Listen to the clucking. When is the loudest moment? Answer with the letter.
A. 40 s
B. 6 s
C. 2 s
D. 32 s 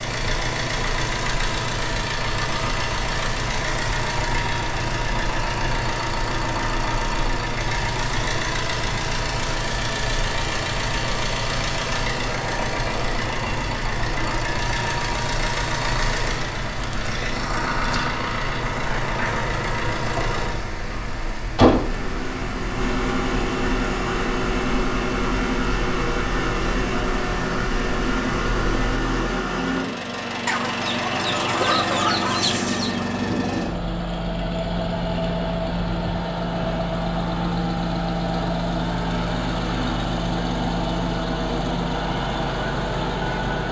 D.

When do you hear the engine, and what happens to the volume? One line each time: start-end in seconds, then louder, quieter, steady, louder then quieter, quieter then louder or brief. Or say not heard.
0.0-43.6 steady.